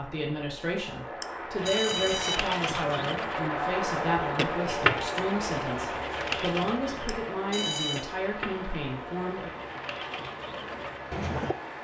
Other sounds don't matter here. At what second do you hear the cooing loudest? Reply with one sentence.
The loudest moment of the cooing is at 5 seconds.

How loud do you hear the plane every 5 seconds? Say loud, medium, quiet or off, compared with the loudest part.
loud, loud, medium.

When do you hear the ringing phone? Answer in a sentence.
You can hear the ringing phone from 1.2 to 2.4 s and from 7.0 to 8.1 s.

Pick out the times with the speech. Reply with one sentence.
The speech can be heard from 0.0 to 9.6 s.